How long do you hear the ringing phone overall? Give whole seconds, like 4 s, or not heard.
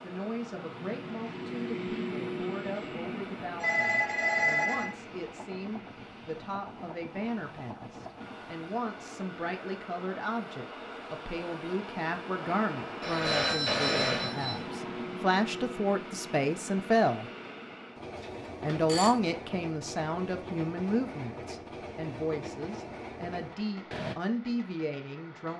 4 s.